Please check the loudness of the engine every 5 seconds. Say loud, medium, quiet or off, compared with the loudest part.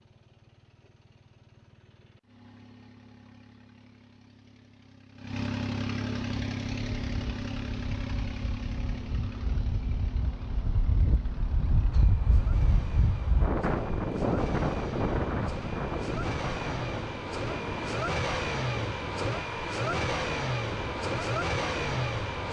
quiet, medium, quiet, loud, loud.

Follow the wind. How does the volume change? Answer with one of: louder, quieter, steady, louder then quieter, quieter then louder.
louder then quieter.